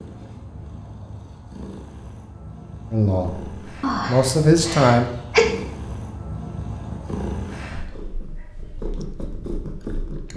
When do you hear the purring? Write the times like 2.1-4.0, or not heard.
0.0-10.3.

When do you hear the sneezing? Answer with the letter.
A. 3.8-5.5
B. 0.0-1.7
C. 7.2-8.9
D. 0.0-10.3
A.